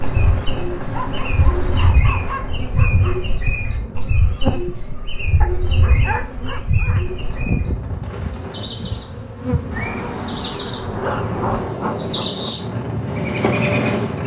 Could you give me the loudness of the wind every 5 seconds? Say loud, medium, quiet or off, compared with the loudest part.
medium, medium, loud.